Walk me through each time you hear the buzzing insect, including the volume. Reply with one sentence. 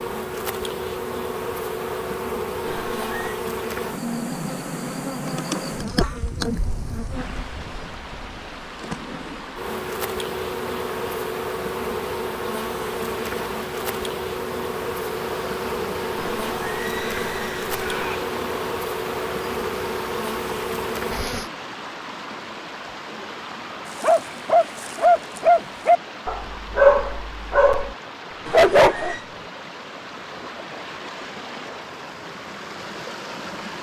You can hear the buzzing insect from 0.0 to 21.5 s, at a steady volume.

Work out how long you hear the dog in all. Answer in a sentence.
You can hear the dog for 5 seconds altogether.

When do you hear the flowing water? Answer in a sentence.
You can hear the flowing water from 7.1 to 33.7 s.